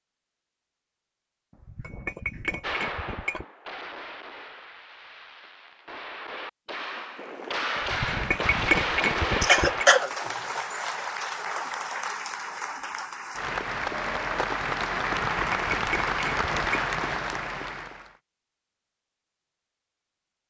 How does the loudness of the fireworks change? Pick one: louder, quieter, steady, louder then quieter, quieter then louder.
quieter then louder.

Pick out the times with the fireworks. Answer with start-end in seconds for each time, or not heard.
2.6-10.1.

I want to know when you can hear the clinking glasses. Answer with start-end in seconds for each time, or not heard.
1.6-3.5, 7.8-9.8, 15.3-16.8.